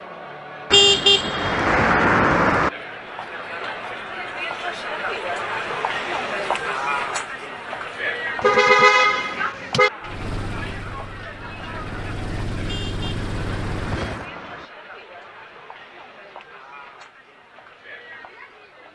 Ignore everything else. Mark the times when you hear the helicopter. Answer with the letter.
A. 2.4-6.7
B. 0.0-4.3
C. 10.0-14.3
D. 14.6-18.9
C.